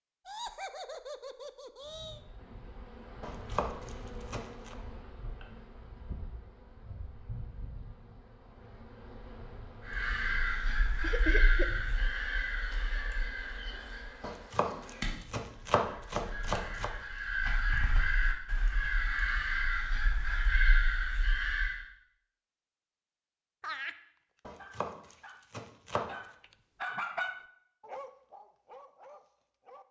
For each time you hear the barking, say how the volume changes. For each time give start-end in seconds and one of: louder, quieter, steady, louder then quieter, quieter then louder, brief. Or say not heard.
23.9-29.8 louder then quieter.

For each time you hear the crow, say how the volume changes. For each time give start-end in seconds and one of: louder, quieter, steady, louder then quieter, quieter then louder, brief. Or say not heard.
9.8-21.8 quieter then louder.